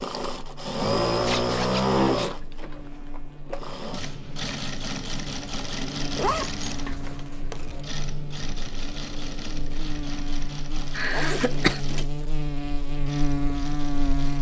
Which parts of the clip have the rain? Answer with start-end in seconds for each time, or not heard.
not heard.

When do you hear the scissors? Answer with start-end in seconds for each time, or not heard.
not heard.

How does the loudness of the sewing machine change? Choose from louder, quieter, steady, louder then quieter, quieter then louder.
quieter.